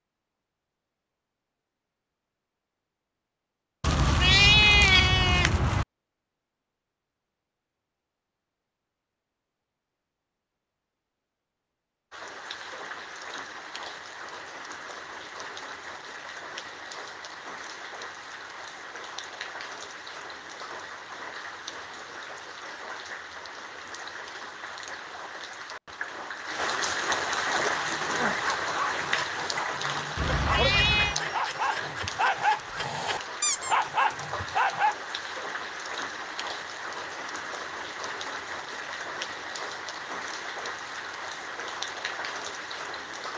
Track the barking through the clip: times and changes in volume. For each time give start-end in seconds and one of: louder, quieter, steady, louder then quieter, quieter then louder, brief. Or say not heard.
27.6-35.0 louder.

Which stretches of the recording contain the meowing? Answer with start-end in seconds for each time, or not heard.
3.8-5.8, 30.1-31.1.